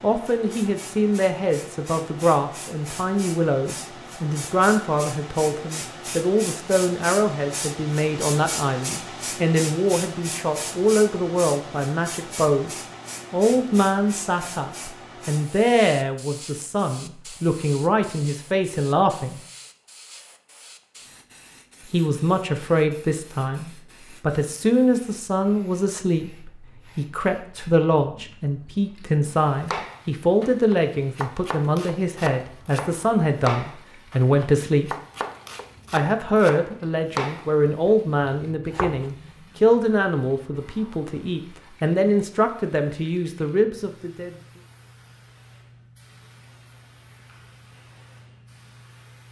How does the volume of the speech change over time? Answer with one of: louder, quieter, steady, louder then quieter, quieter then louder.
steady.